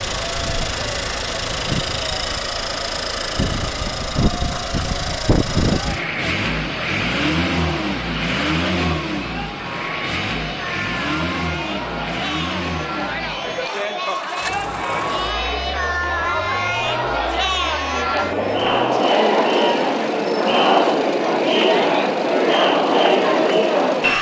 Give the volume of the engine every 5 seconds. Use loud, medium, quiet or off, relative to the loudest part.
loud, loud, medium, quiet, quiet.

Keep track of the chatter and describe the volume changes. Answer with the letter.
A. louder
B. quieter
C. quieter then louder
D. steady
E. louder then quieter
A.